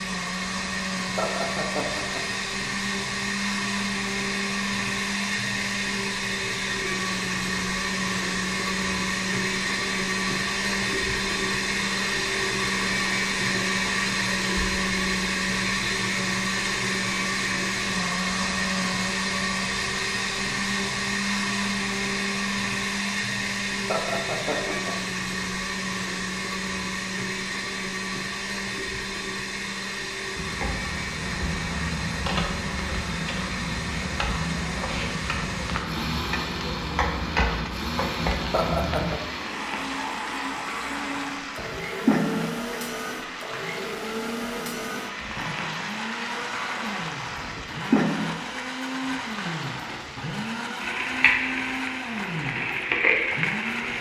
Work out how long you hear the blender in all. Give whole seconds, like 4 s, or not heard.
54 s.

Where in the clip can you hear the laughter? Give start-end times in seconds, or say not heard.
1.1-2.2, 23.9-24.9, 38.5-39.2.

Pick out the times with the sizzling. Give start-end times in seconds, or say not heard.
30.4-53.9.